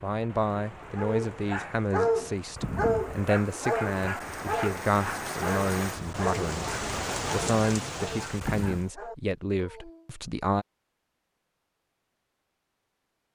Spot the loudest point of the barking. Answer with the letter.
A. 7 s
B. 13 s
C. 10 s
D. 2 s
D.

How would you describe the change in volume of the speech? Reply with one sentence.
The loudness of the speech stays about the same.